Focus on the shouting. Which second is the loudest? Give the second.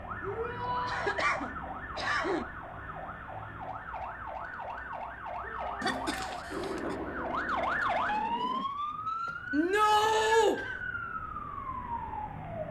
10 s.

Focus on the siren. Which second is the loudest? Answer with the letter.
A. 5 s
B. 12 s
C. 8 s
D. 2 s
C.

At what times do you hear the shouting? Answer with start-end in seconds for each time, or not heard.
0.2-1.1, 5.4-6.5, 9.5-10.6.